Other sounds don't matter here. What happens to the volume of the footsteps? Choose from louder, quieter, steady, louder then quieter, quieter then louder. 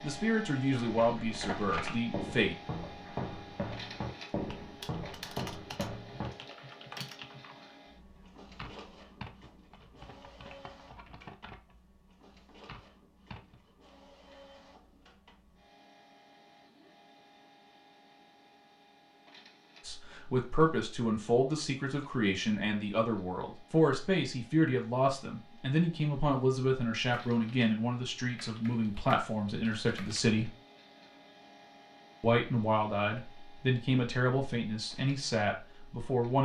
steady.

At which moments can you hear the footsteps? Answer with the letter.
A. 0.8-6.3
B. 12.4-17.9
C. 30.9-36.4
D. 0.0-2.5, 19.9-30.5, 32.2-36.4
A.